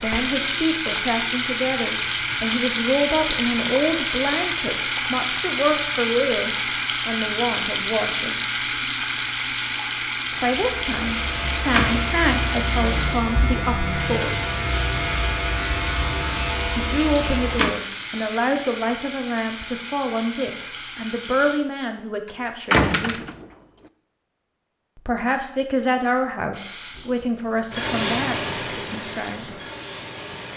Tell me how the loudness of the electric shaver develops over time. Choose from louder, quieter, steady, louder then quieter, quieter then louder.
steady.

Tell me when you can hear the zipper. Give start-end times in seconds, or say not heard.
not heard.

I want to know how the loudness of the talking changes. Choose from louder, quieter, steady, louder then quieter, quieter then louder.
steady.